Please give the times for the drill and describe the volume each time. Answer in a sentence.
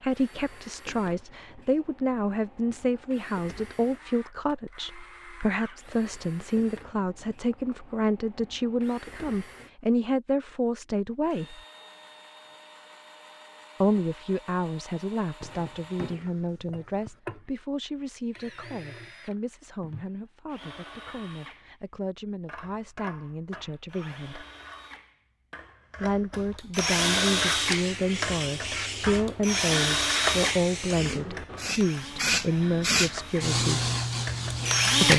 You can hear the drill from 0.0 to 35.1 s, getting louder.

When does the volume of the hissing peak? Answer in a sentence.
The loudest moment of the hissing is at 33 seconds.